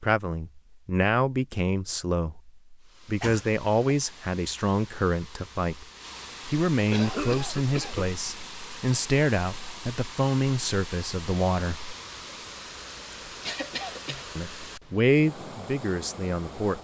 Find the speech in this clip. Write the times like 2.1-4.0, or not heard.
0.0-5.8, 6.5-11.9, 14.3-16.7.